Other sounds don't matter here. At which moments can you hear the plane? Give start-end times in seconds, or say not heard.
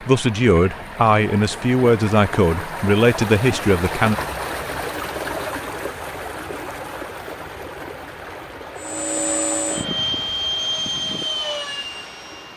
8.8-12.5.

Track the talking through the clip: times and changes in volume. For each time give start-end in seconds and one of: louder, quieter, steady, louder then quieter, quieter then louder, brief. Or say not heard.
0.0-4.2 steady.